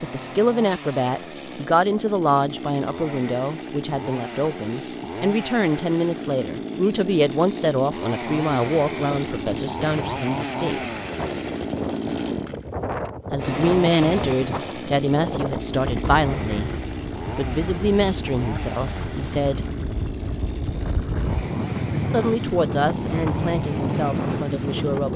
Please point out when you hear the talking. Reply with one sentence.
The talking can be heard from 0.0 to 10.9 s, from 13.3 to 16.7 s, from 17.4 to 19.6 s and from 22.1 to 25.1 s.